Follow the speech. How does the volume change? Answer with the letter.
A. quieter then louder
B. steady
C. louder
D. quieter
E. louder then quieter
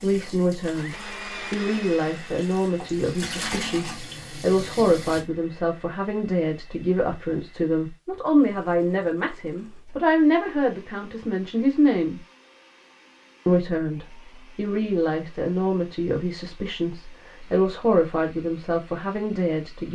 B.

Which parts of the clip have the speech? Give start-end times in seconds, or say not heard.
0.0-12.2, 13.4-19.8.